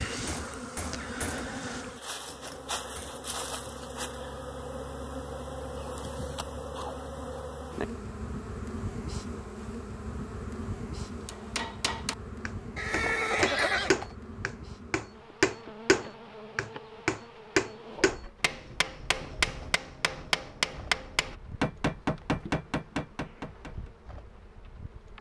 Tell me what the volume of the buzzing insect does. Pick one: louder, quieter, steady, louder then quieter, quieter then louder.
quieter.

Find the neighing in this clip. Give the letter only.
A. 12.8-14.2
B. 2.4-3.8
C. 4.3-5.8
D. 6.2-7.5
A.